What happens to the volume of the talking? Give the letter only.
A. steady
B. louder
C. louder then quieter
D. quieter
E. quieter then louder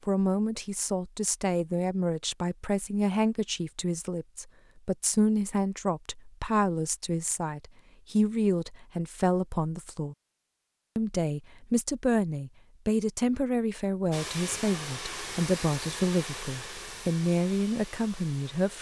A.